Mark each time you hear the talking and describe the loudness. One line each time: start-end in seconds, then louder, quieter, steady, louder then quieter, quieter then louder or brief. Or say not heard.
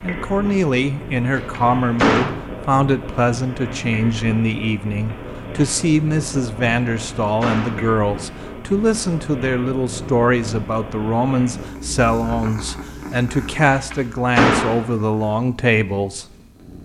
0.0-16.2 steady.